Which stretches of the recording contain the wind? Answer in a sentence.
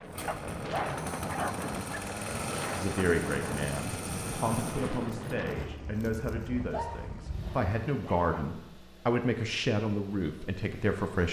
You can hear the wind from 0.0 to 7.7 s.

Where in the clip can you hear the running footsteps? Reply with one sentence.
The running footsteps can't be heard in this clip.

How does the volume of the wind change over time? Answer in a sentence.
The volume of the wind goes down.